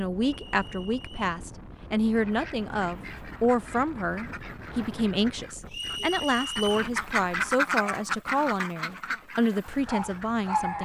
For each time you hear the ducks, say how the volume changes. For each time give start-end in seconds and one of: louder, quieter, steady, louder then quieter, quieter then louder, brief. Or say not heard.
2.2-10.7 louder then quieter.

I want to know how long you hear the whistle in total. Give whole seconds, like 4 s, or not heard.
2 s.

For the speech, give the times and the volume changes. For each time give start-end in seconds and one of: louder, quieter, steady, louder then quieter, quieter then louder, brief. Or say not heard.
0.0-10.8 steady.